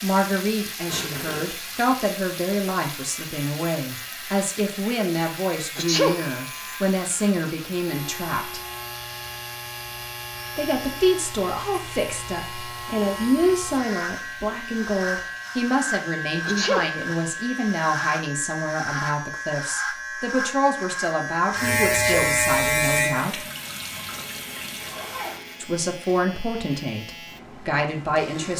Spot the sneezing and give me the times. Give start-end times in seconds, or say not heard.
5.8-6.3, 16.4-16.9, 21.9-22.4.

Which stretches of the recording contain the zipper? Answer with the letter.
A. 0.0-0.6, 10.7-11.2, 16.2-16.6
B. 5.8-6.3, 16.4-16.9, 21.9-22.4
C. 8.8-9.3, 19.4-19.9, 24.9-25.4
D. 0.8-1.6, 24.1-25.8
D.